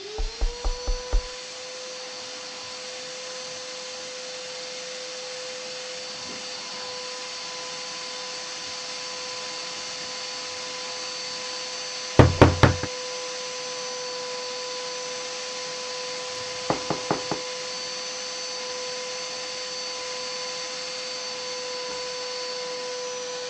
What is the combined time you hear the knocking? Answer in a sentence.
The knocking can be heard for 3 seconds in total.